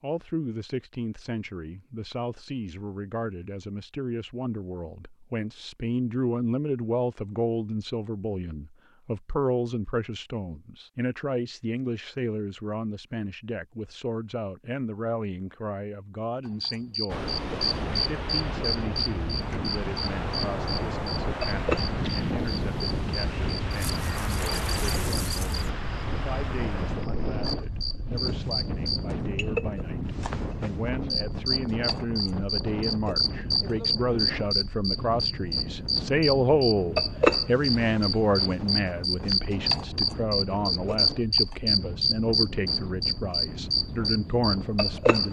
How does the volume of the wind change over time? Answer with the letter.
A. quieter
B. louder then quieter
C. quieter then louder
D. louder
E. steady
A.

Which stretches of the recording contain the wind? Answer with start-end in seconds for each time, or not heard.
17.1-45.2.